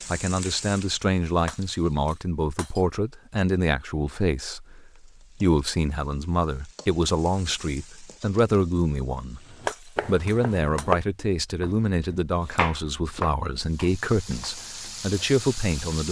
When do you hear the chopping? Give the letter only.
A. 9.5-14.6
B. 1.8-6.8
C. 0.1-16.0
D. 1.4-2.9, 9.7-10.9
A.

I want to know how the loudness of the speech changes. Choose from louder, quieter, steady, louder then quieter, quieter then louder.
steady.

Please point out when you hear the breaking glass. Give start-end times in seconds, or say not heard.
1.4-2.9, 9.7-10.9.